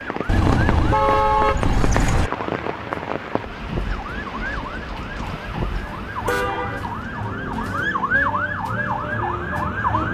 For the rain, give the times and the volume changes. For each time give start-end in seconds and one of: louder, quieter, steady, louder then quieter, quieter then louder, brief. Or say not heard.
0.0-10.0 quieter.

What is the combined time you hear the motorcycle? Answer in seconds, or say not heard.
not heard.